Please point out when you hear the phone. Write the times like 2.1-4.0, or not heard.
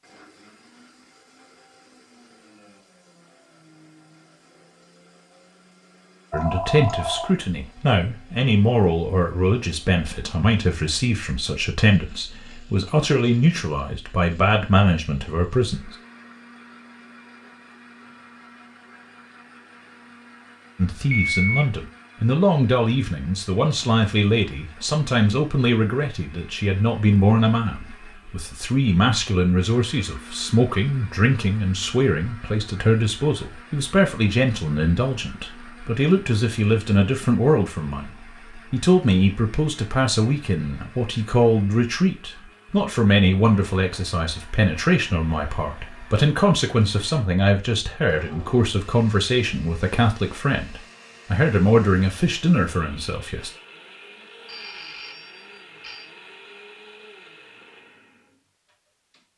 6.3-7.3, 21.1-21.6, 54.5-56.1.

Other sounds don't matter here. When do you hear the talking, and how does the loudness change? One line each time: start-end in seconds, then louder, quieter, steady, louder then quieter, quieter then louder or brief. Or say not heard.
6.3-15.9 steady
20.8-53.5 steady.